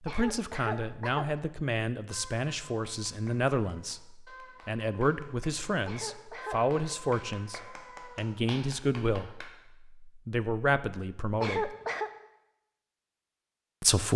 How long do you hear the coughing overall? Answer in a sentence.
The coughing can be heard for 3 seconds in total.